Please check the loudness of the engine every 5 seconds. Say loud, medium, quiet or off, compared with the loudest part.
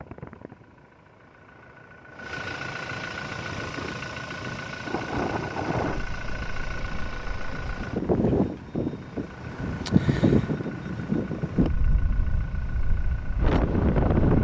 loud, loud, medium.